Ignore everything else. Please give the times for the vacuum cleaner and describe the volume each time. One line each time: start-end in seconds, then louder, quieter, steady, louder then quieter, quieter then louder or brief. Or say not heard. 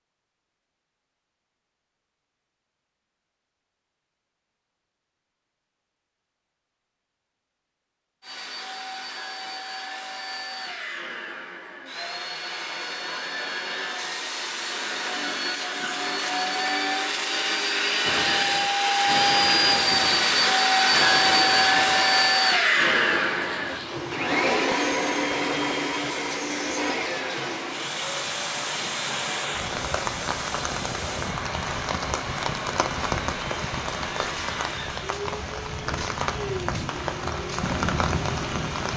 8.2-38.9 louder then quieter.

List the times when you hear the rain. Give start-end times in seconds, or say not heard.
18.0-38.9.